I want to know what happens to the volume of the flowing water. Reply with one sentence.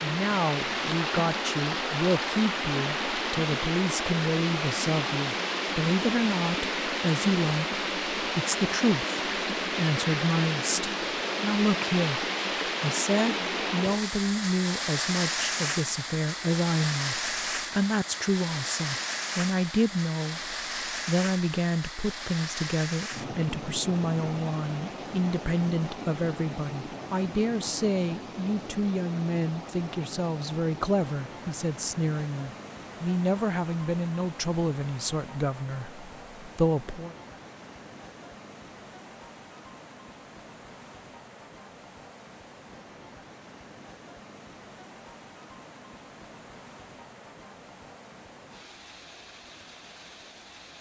The volume of the flowing water goes down.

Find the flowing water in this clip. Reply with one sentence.
The flowing water can be heard from 0.0 to 50.7 s.